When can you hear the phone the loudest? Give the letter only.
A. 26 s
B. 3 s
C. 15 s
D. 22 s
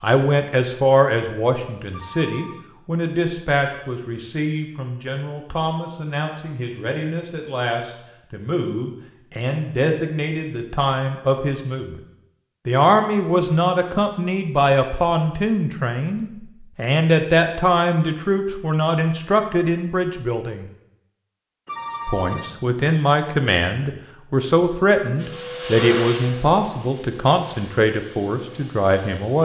D.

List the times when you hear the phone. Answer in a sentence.
The phone can be heard from 1.9 to 2.6 s and from 21.6 to 22.6 s.